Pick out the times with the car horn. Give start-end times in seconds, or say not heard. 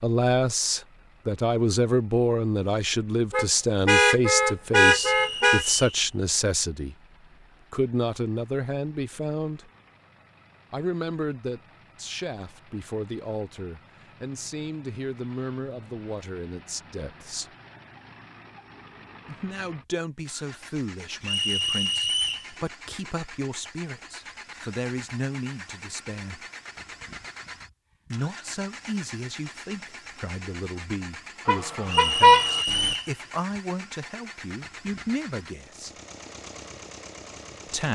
3.3-5.7, 31.4-33.0.